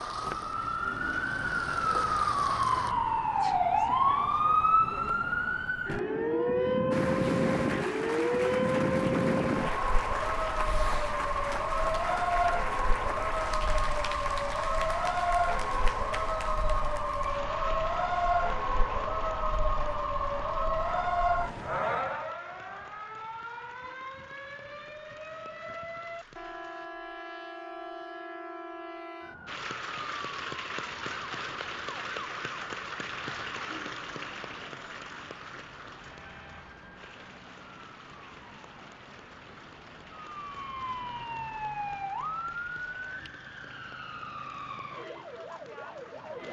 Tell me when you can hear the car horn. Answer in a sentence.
You can't hear the car horn here.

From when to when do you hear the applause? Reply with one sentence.
You can hear the applause from 0.0 to 3.0 s, from 6.9 to 26.9 s and from 29.4 to 46.4 s.